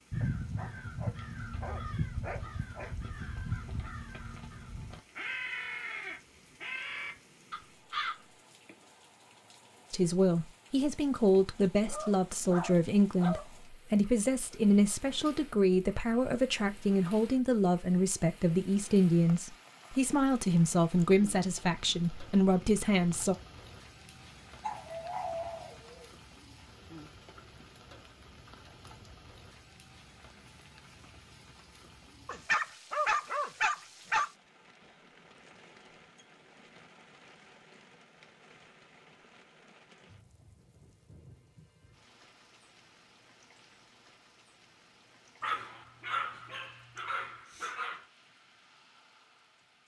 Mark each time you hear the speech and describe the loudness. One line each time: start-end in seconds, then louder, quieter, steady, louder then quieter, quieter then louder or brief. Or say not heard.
9.9-23.4 steady.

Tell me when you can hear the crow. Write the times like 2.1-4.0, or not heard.
0.1-8.2.